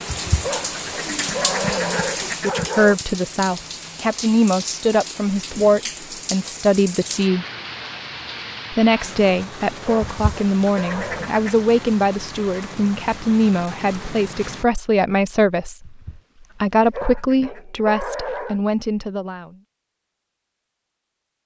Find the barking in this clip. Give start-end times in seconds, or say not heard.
0.4-3.0, 9.8-11.3, 16.9-18.6.